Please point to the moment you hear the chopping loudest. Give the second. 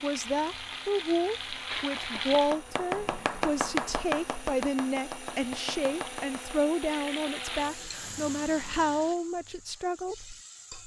4 s.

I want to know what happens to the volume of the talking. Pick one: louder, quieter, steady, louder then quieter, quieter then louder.
steady.